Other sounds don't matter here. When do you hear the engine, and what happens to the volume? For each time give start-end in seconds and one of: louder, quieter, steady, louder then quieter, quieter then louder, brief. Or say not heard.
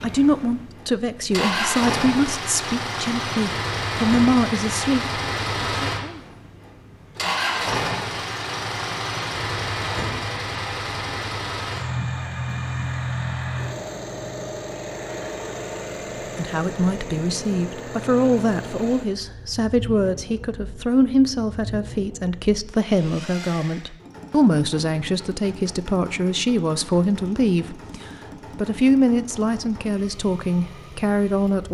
0.0-31.6 quieter.